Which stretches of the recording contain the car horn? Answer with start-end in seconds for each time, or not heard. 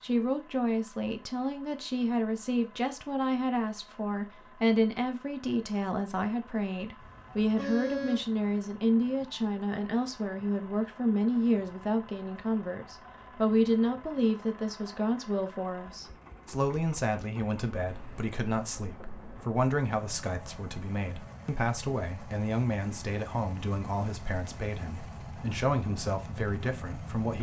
7.0-8.3.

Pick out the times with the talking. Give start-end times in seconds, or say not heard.
0.0-27.3.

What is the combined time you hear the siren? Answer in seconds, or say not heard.
not heard.